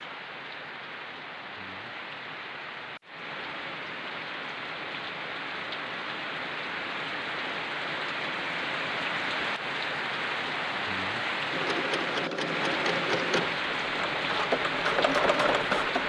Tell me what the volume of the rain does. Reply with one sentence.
The volume of the rain goes up.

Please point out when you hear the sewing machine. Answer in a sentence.
The sewing machine can be heard from 11.4 to 16.0 s.